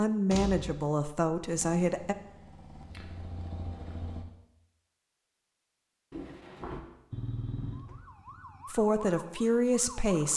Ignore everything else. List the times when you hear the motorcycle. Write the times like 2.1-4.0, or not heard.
1.6-4.2, 7.1-8.7.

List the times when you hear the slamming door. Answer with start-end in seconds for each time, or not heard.
0.3-0.8, 6.1-6.8.